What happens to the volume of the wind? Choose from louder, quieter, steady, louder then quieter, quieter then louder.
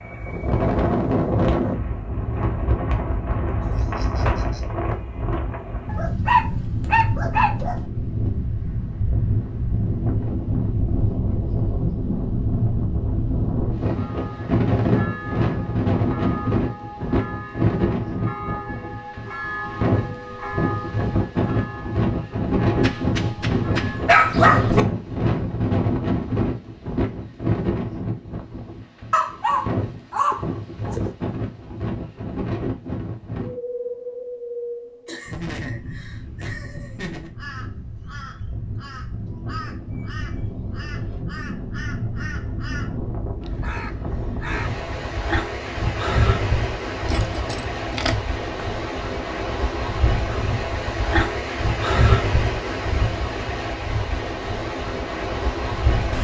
quieter then louder.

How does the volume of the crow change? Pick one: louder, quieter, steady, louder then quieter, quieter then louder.
louder.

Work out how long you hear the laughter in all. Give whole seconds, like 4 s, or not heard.
3 s.